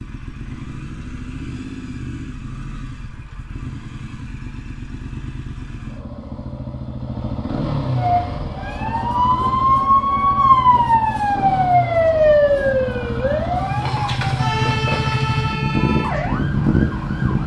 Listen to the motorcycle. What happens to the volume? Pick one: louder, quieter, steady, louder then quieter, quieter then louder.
louder.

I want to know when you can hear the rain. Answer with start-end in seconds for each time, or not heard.
not heard.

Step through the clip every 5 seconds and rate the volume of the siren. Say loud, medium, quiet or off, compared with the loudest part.
off, loud, loud, medium.